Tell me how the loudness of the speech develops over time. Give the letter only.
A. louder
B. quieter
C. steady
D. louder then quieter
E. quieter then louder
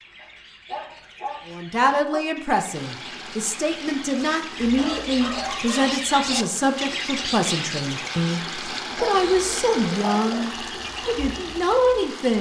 C.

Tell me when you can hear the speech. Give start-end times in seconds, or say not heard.
1.4-12.3.